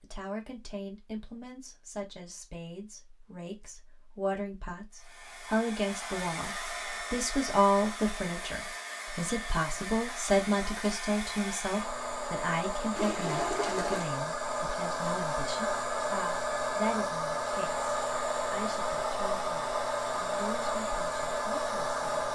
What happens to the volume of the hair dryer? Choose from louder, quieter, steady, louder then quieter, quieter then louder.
louder.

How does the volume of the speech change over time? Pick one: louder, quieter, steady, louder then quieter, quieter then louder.
louder then quieter.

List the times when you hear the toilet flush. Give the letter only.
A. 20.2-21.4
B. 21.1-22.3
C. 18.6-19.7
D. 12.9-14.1
D.